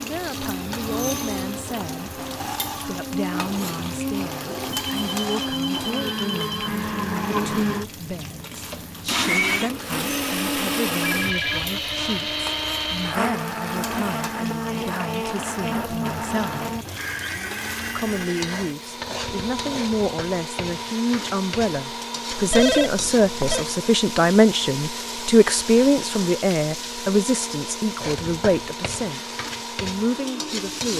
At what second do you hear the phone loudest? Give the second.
23 s.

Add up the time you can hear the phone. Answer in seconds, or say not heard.
4 s.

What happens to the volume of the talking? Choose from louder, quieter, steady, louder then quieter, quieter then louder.
louder.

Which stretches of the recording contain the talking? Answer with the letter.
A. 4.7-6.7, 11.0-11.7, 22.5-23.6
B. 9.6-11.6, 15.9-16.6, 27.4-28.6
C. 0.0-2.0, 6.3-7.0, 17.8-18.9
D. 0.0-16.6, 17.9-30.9
D.